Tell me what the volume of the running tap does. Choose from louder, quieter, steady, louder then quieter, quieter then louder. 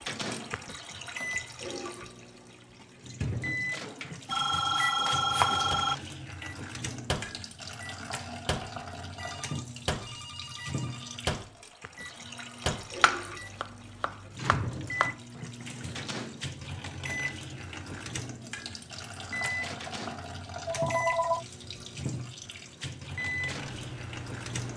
steady.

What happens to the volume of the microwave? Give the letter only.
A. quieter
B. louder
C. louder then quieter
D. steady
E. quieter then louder
D.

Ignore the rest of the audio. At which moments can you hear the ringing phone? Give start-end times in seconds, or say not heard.
4.2-6.0, 9.2-11.2, 20.6-21.4.